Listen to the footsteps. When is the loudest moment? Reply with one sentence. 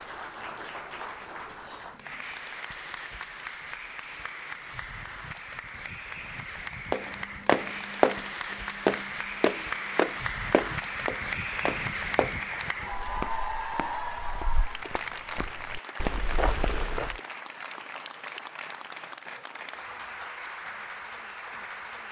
The volume of the footsteps peaks at 8 seconds.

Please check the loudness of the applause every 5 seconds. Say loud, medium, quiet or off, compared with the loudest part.
medium, loud, loud, medium, medium.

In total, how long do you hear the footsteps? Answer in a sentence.
You can hear the footsteps for 10 seconds altogether.